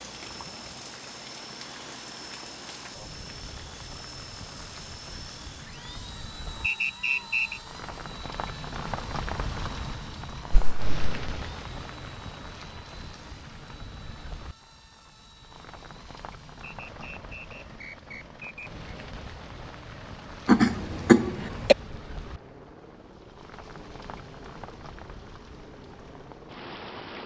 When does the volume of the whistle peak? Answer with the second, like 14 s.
7 s.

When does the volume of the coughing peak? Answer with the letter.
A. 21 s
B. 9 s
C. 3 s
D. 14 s
A.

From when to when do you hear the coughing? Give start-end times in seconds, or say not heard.
10.5-11.2, 20.4-21.8.